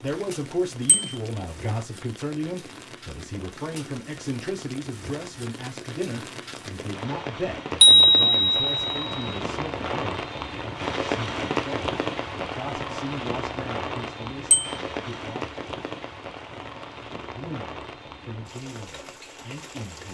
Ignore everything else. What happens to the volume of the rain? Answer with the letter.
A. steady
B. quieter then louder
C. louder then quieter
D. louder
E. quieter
C.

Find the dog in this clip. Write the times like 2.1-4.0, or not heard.
not heard.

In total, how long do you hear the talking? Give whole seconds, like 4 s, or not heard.
18 s.